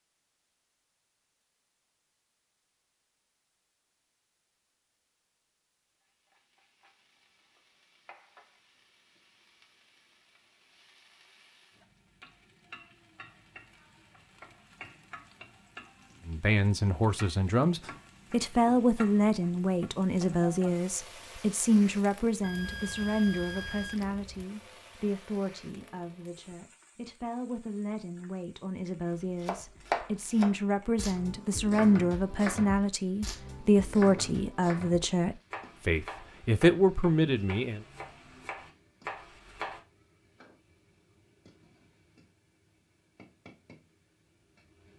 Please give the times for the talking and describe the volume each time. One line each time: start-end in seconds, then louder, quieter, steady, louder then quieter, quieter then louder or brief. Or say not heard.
16.2-37.8 quieter then louder.